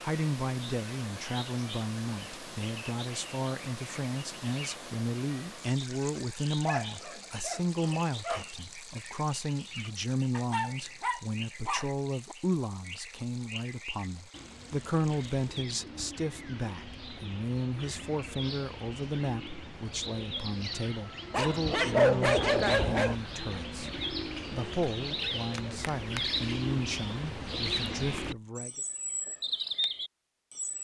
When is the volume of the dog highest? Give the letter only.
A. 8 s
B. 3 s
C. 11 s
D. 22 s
D.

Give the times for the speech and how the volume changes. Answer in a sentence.
You can hear the speech from 0.0 to 28.8 s, at a steady volume.